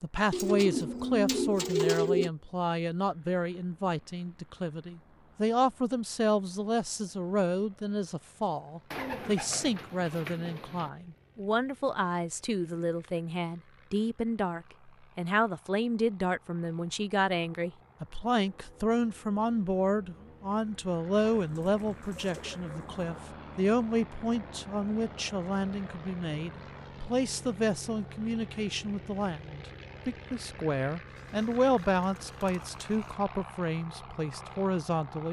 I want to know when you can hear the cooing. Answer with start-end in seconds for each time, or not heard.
0.3-2.3, 8.9-10.9, 21.2-23.1, 31.1-33.1.